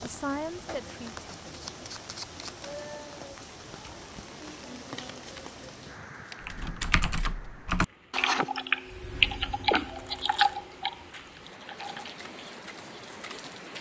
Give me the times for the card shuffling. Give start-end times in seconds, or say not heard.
1.1-2.7, 4.9-7.5, 9.9-11.3.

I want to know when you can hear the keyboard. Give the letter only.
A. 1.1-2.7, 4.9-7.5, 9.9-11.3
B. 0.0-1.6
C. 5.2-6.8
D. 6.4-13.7
D.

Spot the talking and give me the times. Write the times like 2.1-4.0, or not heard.
0.0-1.6.